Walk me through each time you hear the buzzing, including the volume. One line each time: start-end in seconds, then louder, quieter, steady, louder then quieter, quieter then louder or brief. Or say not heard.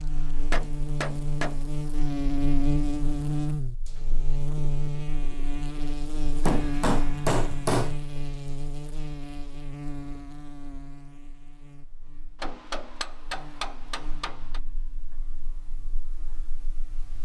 0.0-17.2 quieter.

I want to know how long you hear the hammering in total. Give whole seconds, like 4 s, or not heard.
5 s.